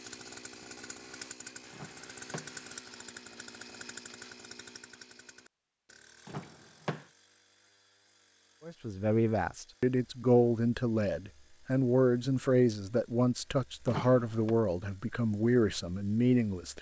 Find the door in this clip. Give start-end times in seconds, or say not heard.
1.7-2.8, 6.2-7.0, 13.8-14.6.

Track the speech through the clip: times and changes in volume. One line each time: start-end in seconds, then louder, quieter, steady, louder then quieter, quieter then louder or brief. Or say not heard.
8.7-16.7 steady.